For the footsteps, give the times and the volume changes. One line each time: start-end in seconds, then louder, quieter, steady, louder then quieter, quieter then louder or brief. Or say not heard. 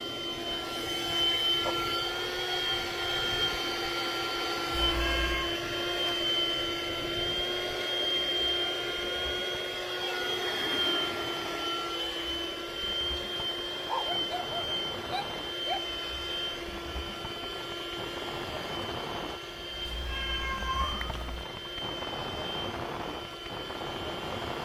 not heard.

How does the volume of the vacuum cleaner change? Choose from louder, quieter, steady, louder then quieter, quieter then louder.
quieter.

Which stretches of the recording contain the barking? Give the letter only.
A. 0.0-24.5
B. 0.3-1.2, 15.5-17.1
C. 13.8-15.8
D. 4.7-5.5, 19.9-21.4
C.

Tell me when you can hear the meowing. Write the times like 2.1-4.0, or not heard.
4.7-5.5, 19.9-21.4.